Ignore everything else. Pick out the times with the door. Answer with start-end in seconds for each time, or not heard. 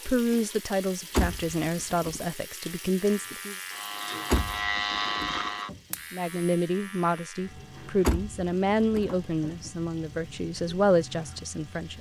1.1-2.2, 4.3-6.0, 8.0-9.7.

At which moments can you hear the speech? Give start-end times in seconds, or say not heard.
0.1-3.5, 6.1-11.9.